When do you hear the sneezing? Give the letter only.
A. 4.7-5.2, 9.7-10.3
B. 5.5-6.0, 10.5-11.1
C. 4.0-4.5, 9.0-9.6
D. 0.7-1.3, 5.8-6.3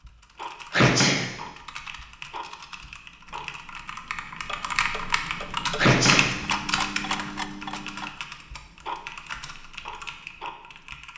D.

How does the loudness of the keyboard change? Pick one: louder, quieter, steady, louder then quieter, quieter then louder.
louder then quieter.